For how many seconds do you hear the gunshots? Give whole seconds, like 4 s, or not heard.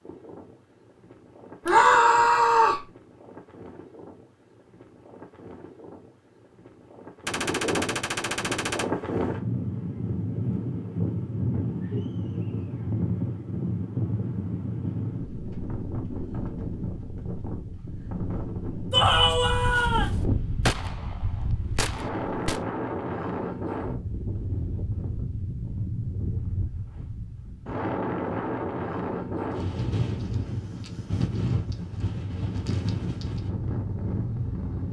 5 s.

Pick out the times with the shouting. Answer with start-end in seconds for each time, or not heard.
1.6-2.9, 18.9-20.1.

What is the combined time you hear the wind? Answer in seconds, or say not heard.
35 s.